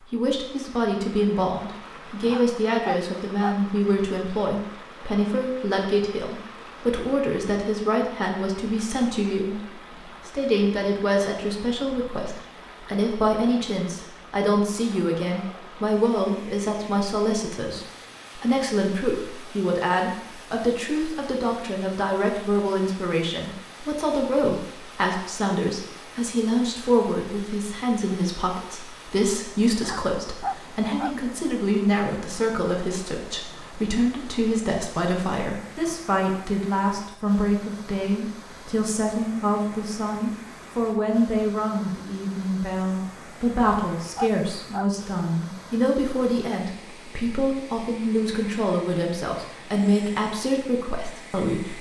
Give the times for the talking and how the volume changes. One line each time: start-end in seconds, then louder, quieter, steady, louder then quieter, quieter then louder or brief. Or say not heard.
0.1-51.7 steady.